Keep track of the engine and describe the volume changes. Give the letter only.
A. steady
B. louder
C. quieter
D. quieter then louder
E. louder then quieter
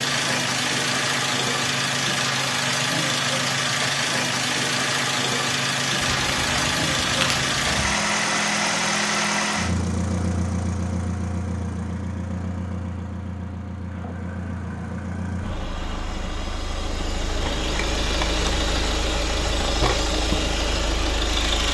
D.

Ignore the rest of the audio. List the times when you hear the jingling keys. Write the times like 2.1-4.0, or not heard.
6.0-7.9.